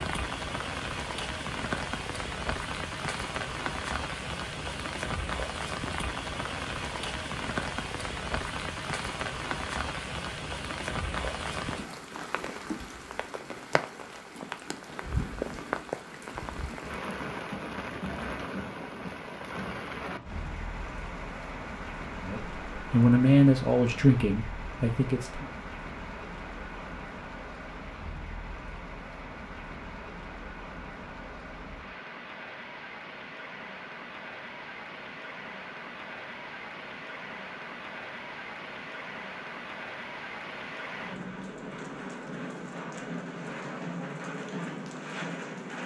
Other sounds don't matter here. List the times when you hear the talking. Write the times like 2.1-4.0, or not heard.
22.2-25.4.